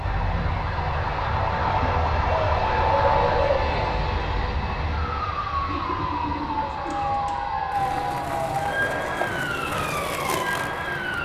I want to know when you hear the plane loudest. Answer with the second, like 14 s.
3 s.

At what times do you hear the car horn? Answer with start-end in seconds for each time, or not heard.
not heard.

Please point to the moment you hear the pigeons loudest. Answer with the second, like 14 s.
3 s.